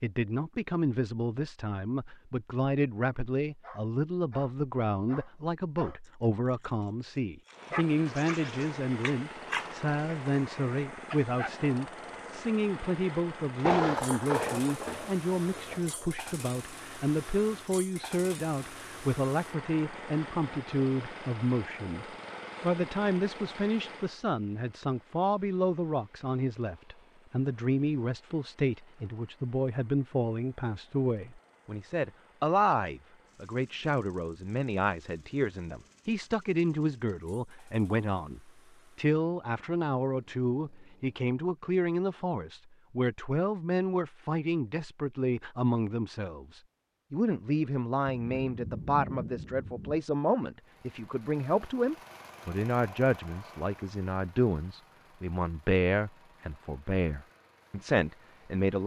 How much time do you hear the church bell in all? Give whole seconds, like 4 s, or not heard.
not heard.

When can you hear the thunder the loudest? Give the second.
14 s.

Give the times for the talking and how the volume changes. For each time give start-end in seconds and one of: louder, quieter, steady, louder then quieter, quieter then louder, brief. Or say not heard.
0.0-58.8 steady.